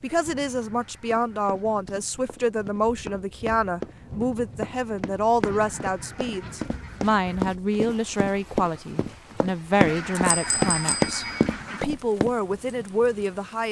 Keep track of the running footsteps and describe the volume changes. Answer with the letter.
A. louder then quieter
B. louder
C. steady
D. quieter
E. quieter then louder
B.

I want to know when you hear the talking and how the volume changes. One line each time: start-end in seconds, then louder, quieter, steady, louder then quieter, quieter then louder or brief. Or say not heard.
0.0-13.6 steady.